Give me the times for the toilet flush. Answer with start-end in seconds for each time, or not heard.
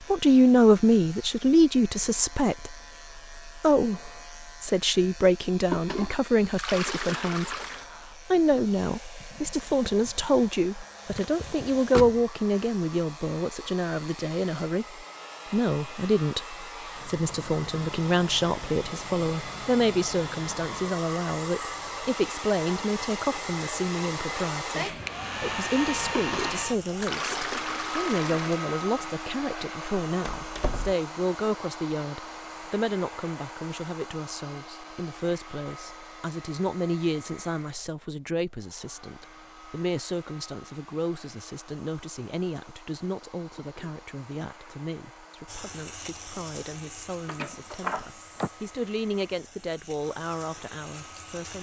5.7-7.8, 26.1-28.6, 43.5-44.9.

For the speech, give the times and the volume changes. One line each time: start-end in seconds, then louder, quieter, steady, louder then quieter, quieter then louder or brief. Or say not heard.
0.1-51.5 quieter.